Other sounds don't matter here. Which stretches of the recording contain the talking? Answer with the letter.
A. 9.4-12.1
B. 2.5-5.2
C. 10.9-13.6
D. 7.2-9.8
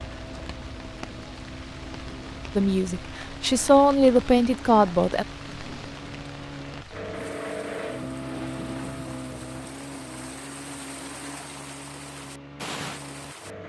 B.